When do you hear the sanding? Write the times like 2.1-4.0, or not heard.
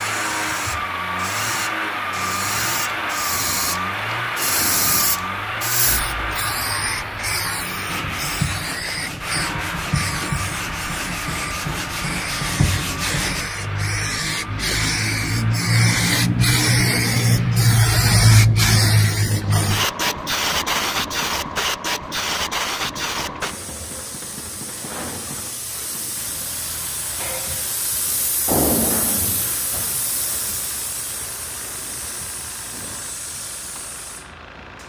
7.8-13.4.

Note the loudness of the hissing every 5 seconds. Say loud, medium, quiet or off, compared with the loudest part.
medium, medium, medium, loud, medium, medium, quiet.